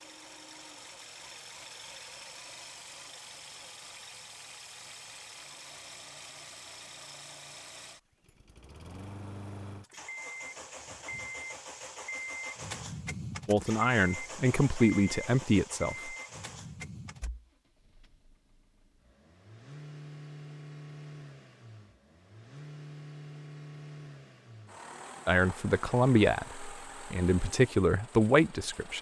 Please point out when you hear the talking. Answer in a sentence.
You can hear the talking from 13.4 to 16.1 s and from 25.2 to 28.9 s.